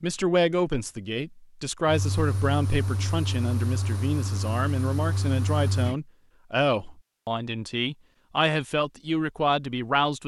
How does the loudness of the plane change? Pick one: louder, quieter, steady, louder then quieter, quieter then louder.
steady.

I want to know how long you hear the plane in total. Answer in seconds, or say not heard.
4 s.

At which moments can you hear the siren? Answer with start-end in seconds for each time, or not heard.
not heard.